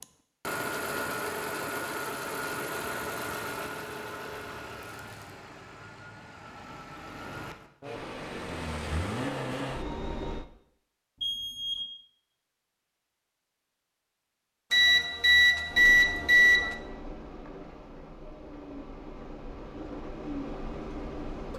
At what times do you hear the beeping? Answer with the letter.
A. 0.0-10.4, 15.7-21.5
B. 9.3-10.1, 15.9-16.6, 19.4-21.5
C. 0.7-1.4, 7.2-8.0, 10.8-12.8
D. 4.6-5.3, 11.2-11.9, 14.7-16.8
D.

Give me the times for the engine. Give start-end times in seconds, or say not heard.
0.0-10.4, 15.7-21.5.